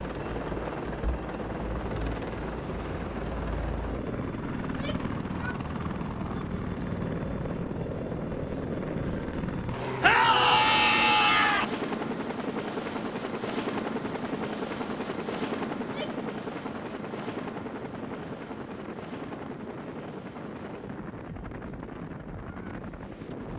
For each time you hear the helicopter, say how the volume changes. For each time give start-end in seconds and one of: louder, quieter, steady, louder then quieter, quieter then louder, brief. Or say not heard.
0.0-23.5 quieter.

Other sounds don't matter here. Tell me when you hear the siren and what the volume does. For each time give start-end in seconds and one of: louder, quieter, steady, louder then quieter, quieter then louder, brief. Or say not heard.
not heard.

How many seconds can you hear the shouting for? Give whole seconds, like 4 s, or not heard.
3 s.